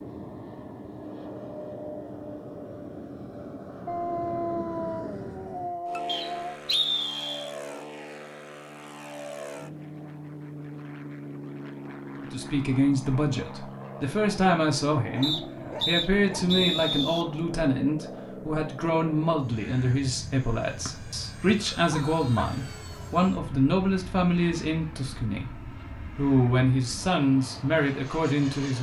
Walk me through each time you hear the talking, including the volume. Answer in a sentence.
You can hear the talking from 12.2 to 28.7 s, at a steady volume.